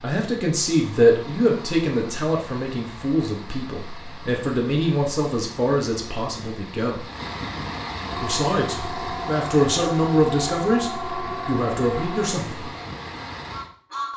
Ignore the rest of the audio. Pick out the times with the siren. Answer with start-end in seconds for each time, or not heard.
8.1-12.3.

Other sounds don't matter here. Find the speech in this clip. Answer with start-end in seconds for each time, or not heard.
0.0-7.0, 8.2-12.7.